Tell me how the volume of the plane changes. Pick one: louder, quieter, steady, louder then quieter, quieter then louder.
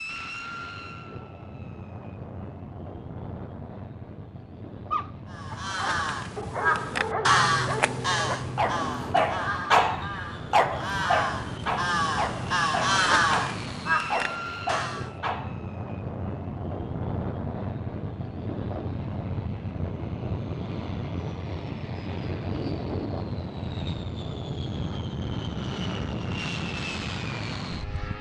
louder.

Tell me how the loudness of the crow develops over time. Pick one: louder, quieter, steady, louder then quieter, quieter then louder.
quieter then louder.